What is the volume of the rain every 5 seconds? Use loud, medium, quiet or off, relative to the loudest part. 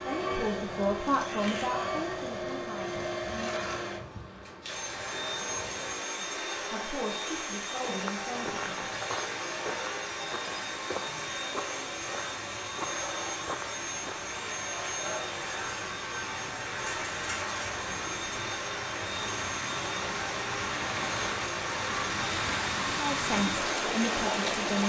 quiet, quiet, quiet, medium, loud.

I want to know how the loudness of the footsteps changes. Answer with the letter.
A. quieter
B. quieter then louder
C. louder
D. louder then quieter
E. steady
B.